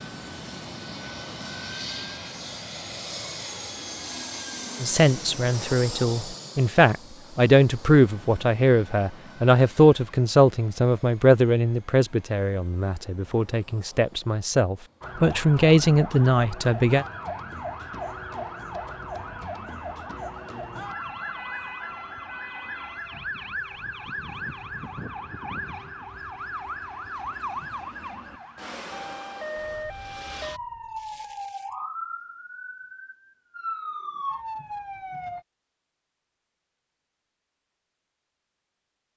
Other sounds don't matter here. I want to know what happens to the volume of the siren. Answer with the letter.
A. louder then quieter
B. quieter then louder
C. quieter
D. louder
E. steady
E.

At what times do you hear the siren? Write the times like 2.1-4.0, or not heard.
15.0-35.5.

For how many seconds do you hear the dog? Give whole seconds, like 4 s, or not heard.
not heard.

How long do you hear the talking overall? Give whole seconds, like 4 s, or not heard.
12 s.